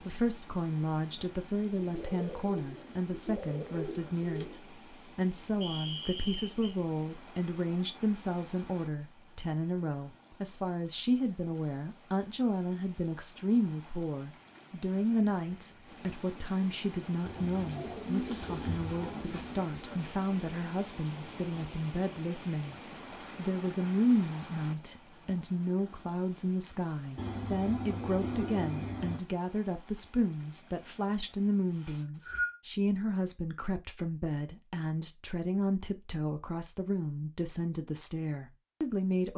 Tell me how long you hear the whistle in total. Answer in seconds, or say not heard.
2 s.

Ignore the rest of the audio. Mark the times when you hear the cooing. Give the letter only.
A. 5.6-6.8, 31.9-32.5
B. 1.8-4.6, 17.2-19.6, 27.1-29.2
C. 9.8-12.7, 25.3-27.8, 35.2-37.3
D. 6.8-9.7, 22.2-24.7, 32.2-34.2
B.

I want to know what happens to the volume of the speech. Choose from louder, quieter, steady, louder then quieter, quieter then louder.
steady.